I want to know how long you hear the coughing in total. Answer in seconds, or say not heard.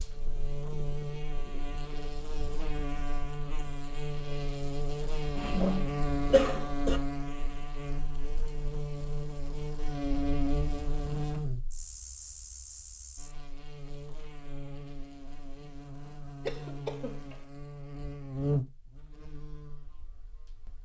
3 s.